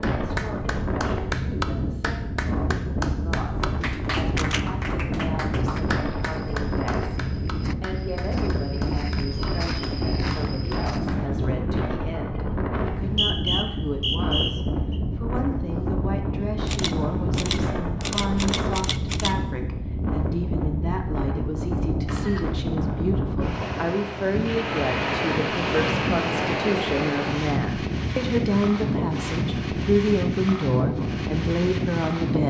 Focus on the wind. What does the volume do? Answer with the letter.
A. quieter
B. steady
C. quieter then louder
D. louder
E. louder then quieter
B.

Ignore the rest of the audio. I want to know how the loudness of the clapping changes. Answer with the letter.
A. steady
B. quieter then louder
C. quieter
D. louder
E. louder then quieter
C.